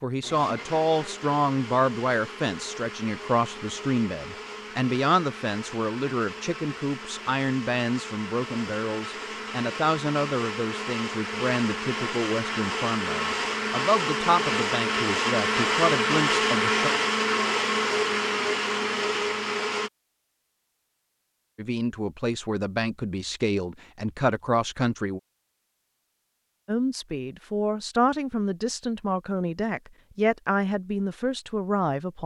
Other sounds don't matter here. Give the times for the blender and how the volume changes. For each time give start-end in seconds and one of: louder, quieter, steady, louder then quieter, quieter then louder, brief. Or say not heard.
0.2-19.9 louder.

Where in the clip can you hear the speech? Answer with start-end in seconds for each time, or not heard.
0.0-16.9, 21.6-25.2, 26.6-32.2.